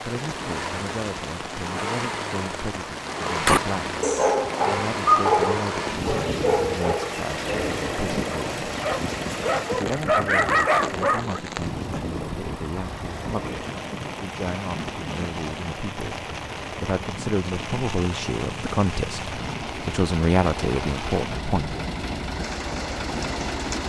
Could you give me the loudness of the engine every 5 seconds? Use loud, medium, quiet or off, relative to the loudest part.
loud, loud, medium, medium, loud.